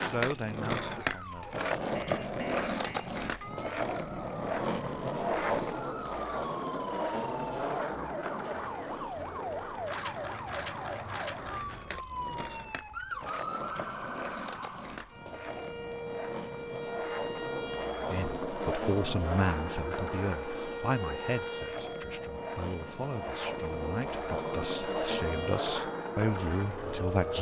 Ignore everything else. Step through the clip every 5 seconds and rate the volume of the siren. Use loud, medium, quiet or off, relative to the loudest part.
medium, loud, loud, loud, loud, loud.